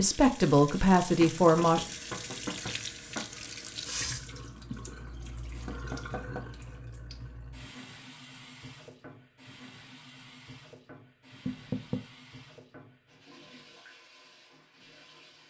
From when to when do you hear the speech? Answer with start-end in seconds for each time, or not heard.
0.0-1.9.